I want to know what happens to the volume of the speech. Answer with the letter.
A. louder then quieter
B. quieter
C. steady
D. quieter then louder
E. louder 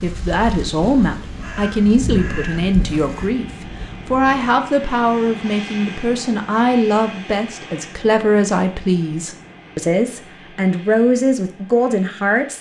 C.